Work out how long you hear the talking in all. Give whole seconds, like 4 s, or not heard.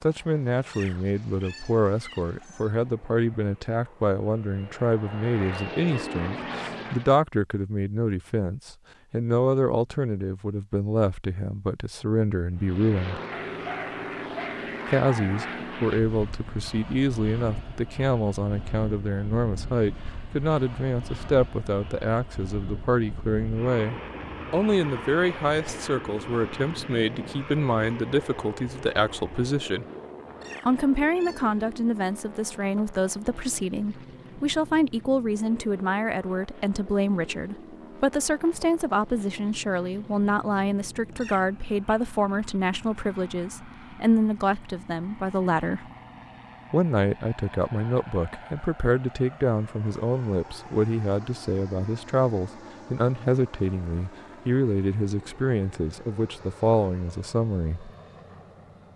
55 s.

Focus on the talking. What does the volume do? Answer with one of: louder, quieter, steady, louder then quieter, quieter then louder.
steady.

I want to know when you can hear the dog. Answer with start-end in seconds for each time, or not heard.
13.3-15.8.